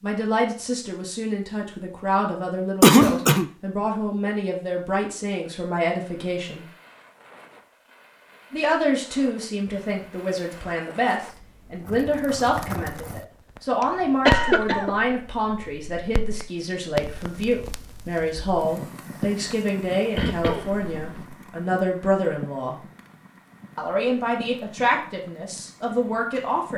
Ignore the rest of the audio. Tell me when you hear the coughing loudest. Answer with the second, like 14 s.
3 s.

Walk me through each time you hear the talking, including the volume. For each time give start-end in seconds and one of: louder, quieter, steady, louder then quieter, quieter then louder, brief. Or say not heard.
0.0-6.7 steady
8.5-22.8 steady
23.8-26.7 brief.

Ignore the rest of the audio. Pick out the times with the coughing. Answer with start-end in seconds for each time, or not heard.
2.8-3.5, 13.8-14.9, 20.1-21.4.